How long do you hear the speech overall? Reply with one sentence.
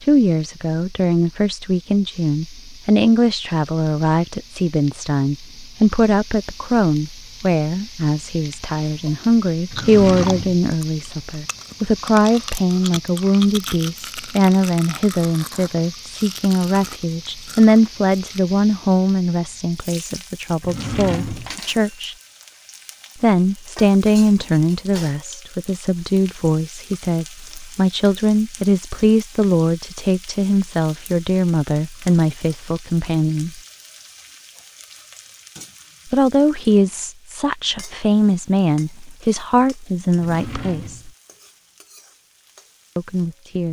You can hear the speech for 38 seconds altogether.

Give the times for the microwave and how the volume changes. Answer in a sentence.
The microwave can't be heard in this clip.